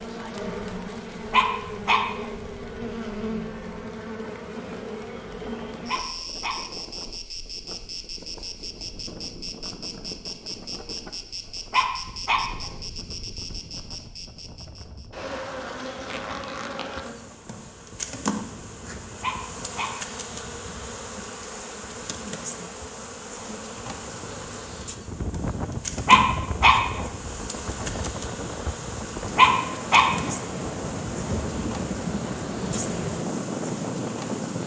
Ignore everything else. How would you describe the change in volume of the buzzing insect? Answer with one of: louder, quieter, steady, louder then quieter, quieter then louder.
steady.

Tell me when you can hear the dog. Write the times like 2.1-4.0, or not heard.
1.3-2.2, 5.8-6.8, 11.7-12.7, 19.2-19.9, 26.1-27.0, 29.4-30.3.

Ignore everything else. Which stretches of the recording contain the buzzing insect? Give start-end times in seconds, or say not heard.
0.0-34.6.